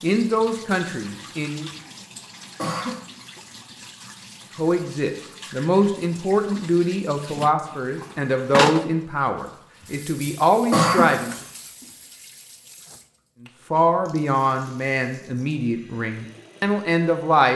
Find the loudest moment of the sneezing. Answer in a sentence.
The loudest moment of the sneezing is at 11 seconds.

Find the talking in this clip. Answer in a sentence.
You can hear the talking from 0.0 to 1.6 s, from 4.5 to 11.3 s and from 13.7 to 17.5 s.